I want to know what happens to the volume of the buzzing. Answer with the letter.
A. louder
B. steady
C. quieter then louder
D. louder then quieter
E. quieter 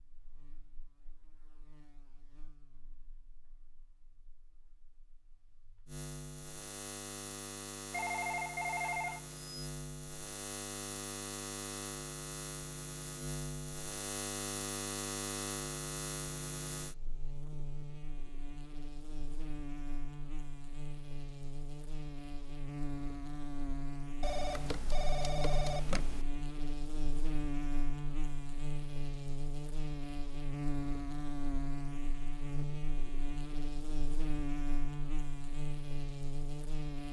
A.